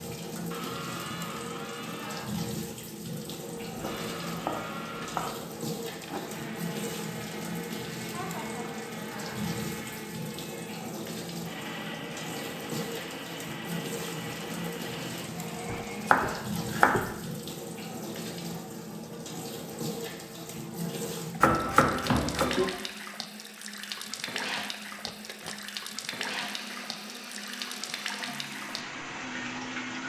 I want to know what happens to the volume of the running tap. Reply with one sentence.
The volume of the running tap stays about the same.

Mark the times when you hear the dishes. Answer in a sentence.
You can't hear the dishes here.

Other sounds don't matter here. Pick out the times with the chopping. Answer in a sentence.
You can hear the chopping from 3.6 to 5.2 s, from 15.7 to 17.1 s and from 21.4 to 22.6 s.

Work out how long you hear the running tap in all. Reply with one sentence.
You can hear the running tap for 30 seconds altogether.